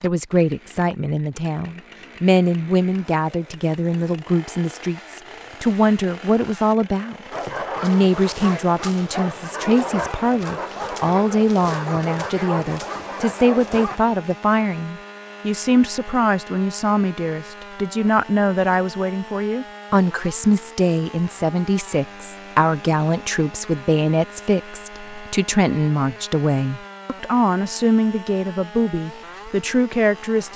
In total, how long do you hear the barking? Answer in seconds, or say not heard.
7 s.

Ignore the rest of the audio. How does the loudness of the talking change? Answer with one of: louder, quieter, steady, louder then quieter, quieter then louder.
steady.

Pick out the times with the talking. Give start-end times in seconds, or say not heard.
0.0-7.2, 7.8-30.5.